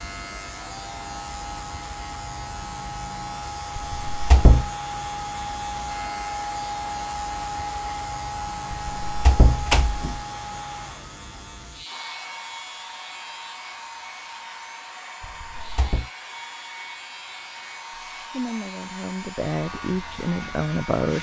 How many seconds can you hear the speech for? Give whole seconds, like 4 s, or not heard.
3 s.